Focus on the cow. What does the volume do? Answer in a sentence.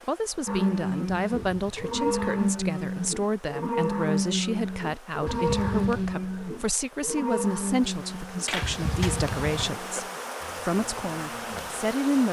The loudness of the cow goes down.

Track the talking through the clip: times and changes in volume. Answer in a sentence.
The talking can be heard from 0.1 to 12.2 s, at a steady volume.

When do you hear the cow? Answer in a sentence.
You can hear the cow from 0.5 to 12.2 s.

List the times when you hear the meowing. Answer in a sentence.
You can hear the meowing from 1.2 to 2.4 s, from 5.2 to 6.2 s and from 8.6 to 9.7 s.